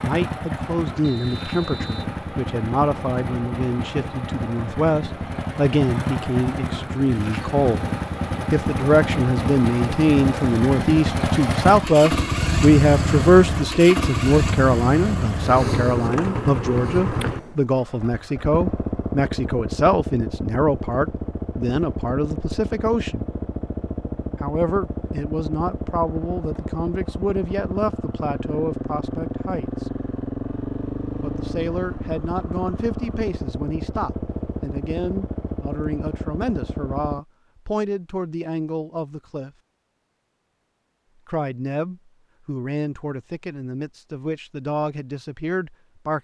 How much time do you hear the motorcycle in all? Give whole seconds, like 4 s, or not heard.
37 s.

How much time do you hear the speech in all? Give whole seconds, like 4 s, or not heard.
41 s.